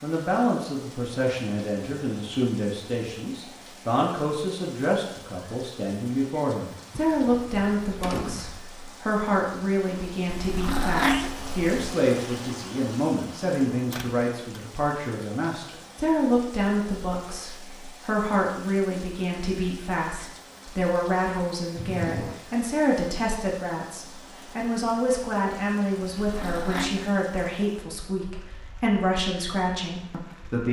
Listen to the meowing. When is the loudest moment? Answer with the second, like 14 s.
11 s.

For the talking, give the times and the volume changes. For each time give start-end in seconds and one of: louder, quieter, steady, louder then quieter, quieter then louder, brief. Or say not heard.
0.0-30.6 steady.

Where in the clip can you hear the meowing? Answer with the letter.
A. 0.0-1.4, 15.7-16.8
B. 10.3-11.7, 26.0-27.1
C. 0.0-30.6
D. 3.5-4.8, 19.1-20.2
B.